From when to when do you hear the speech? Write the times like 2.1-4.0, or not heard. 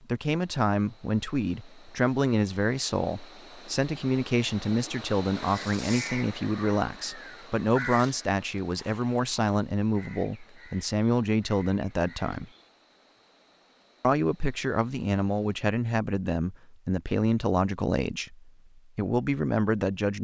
0.1-12.5, 14.0-20.1.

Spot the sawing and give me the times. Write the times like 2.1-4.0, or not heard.
not heard.